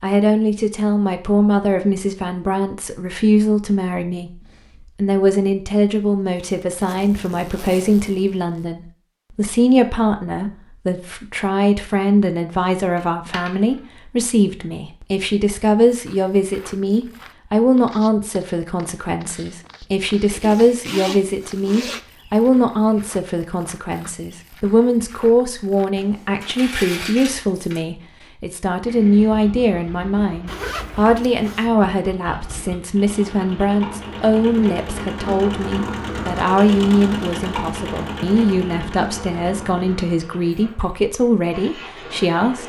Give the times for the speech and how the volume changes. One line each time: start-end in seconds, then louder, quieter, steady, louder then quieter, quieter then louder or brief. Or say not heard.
0.0-42.6 steady.